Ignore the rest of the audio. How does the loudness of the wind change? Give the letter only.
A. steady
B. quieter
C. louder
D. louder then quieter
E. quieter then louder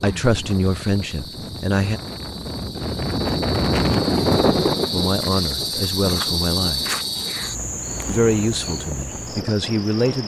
D.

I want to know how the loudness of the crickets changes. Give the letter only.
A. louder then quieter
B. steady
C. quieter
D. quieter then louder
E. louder
A.